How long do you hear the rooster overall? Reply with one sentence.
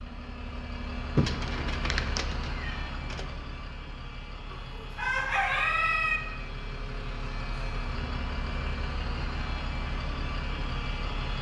The rooster can be heard for 2 seconds in total.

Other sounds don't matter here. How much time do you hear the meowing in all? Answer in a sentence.
The meowing can be heard for 2 seconds in total.